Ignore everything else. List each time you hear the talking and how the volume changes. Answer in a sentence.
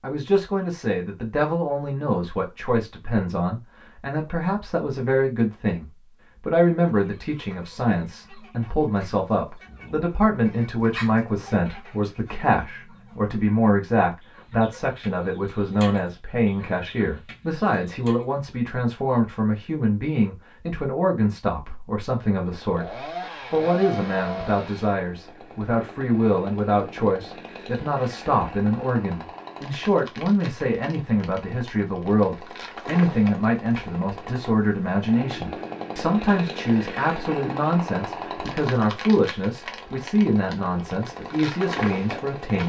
The talking can be heard from 0.0 to 42.6 s, at a steady volume.